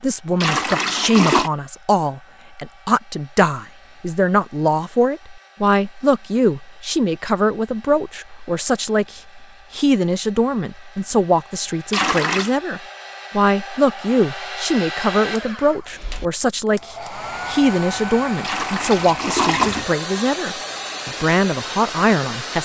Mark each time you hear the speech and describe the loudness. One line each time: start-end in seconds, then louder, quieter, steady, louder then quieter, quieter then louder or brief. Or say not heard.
0.0-22.6 steady.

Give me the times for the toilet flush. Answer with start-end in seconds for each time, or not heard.
0.4-1.5, 11.9-12.6, 18.4-19.9.